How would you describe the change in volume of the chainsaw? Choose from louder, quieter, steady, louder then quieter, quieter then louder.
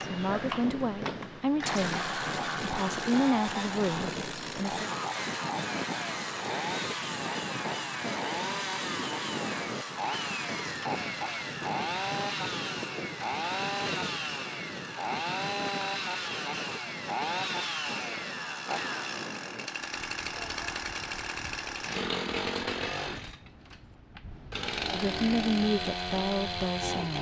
steady.